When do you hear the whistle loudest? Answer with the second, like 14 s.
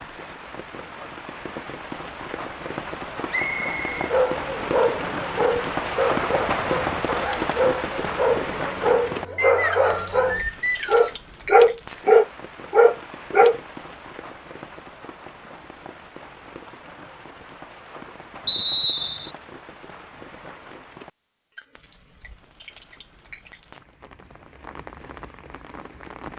19 s.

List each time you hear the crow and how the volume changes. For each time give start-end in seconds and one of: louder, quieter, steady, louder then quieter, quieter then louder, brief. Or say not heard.
not heard.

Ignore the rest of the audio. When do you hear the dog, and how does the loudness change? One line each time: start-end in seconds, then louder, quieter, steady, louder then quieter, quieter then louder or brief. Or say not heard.
4.0-13.6 louder.